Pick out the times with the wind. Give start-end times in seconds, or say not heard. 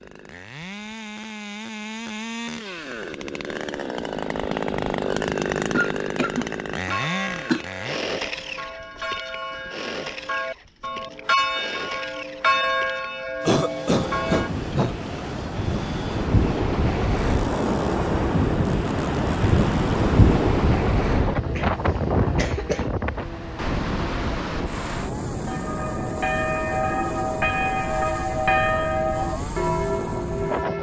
13.9-30.7.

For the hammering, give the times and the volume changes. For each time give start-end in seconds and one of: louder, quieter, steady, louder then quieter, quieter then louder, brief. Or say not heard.
not heard.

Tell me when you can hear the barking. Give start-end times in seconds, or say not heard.
not heard.